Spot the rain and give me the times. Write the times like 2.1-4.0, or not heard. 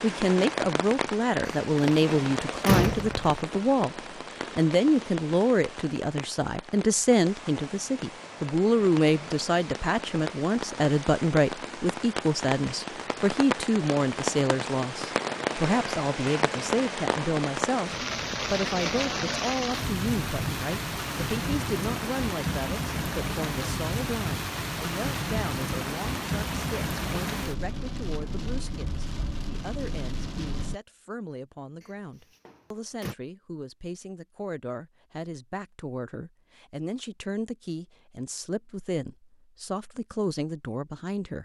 0.0-30.8.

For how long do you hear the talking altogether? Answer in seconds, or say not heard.
41 s.